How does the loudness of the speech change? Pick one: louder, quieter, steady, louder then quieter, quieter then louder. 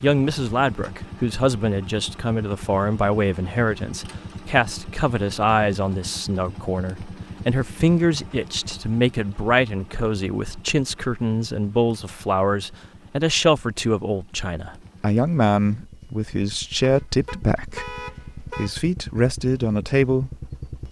steady.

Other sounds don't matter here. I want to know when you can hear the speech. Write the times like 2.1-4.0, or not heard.
0.0-20.5.